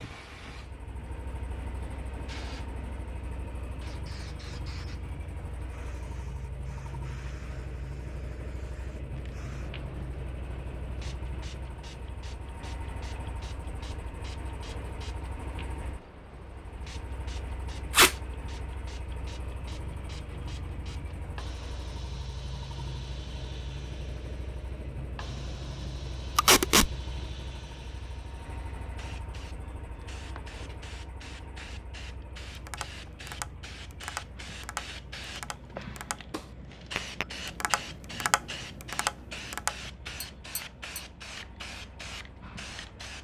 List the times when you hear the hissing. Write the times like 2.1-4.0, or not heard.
0.0-43.1.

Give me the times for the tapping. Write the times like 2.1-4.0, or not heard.
32.5-41.0.